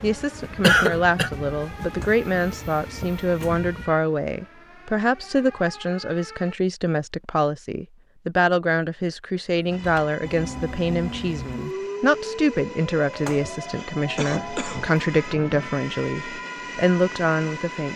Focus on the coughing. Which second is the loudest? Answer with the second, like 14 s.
1 s.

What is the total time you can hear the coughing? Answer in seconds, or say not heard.
2 s.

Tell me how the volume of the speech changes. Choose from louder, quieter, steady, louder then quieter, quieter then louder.
steady.